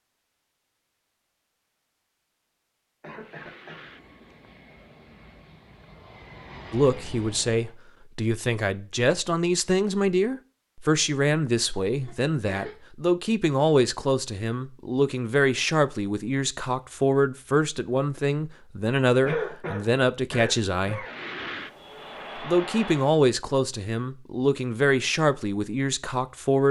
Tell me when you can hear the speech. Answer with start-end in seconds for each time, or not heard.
6.7-21.1, 22.4-26.6.